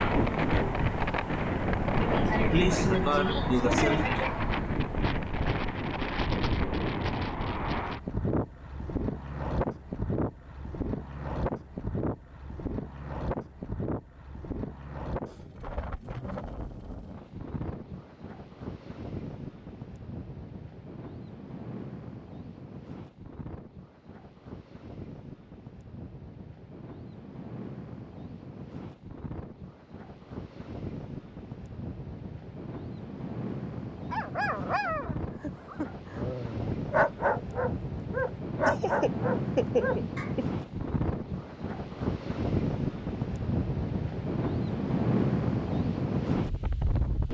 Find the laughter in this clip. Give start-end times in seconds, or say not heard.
2.0-4.3, 38.6-40.5.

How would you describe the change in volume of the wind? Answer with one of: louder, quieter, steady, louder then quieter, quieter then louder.
quieter then louder.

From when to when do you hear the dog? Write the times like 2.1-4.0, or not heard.
34.1-40.4.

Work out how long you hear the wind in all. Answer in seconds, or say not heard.
47 s.